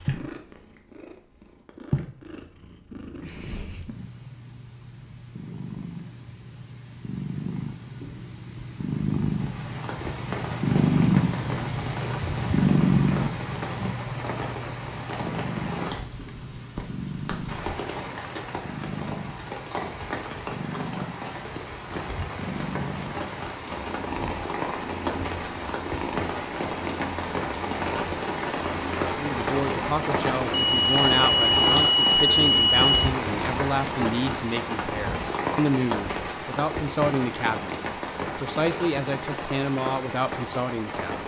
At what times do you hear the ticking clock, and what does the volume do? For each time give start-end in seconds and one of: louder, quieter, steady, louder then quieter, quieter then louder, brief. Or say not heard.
not heard.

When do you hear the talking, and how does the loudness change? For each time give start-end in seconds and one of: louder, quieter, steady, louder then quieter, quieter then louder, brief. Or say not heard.
29.1-37.8 steady
38.4-41.2 brief.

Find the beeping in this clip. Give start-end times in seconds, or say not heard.
30.5-32.9.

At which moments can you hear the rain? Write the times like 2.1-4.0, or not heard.
9.3-41.2.